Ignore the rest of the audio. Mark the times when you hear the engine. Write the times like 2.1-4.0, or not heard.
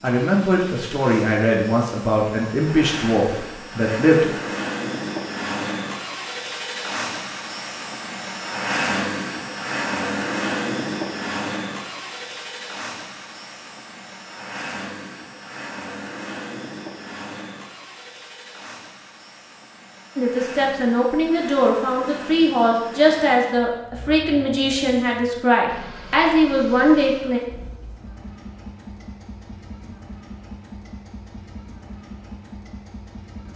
0.0-33.5.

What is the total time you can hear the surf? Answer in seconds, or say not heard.
not heard.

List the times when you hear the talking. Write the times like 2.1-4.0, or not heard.
0.0-4.2, 20.1-27.4.